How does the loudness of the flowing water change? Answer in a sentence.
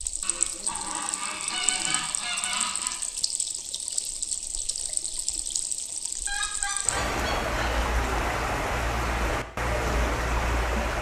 The volume of the flowing water goes up.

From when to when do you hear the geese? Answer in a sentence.
You can hear the geese from 0.2 to 3.0 s and from 6.2 to 7.9 s.